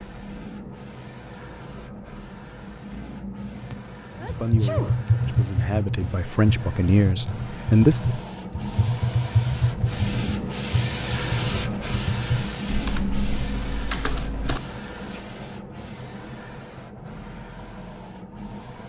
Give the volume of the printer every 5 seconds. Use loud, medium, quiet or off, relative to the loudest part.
medium, medium, loud, medium.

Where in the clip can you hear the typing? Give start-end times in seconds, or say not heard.
4.2-14.6.